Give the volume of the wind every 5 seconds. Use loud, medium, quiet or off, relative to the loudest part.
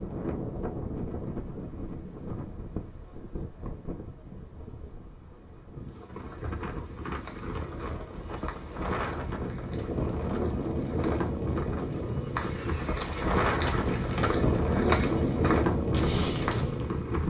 medium, medium, loud, loud.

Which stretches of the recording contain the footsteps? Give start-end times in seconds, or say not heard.
6.7-16.8.